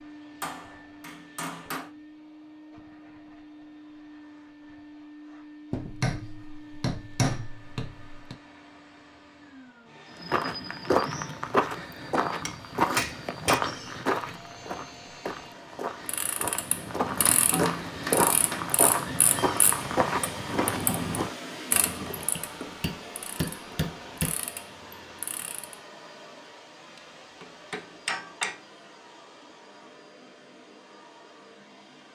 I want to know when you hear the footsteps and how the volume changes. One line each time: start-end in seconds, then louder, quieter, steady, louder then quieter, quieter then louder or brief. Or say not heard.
10.2-21.4 quieter then louder.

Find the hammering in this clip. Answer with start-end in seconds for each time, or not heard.
0.4-1.9, 5.7-8.3, 12.4-13.6, 17.1-18.7, 22.4-24.4, 27.4-28.6.